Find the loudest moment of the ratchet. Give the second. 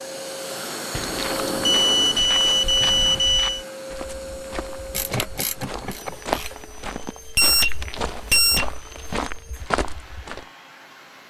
5 s.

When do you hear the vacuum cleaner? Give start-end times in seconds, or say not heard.
0.0-11.2.